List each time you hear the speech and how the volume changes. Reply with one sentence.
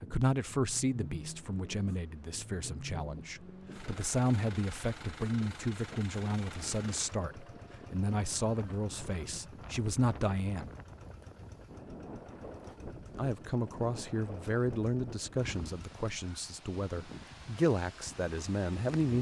You can hear the speech from 0.0 to 10.7 s, at a steady volume; and from 13.2 to 19.1 s, getting quieter then louder.